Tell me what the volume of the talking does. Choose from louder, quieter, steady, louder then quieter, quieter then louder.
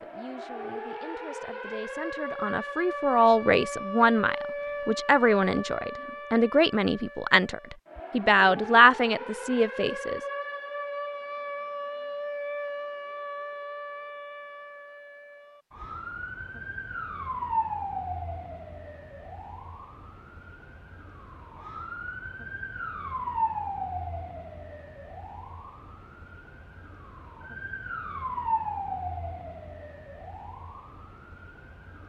louder.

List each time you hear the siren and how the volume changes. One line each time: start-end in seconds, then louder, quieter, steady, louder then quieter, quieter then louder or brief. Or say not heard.
0.0-32.0 steady.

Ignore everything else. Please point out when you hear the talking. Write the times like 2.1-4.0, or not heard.
0.0-10.2.